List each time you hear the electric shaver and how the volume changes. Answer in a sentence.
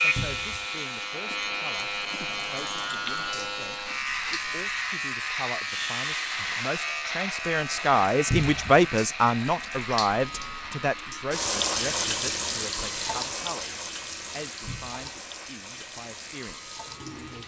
The electric shaver can be heard from 0.0 to 17.4 s, getting quieter.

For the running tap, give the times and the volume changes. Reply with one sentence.
The running tap can be heard from 0.0 to 17.4 s, getting louder then quieter.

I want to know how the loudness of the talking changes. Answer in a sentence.
The volume of the talking goes up, then down.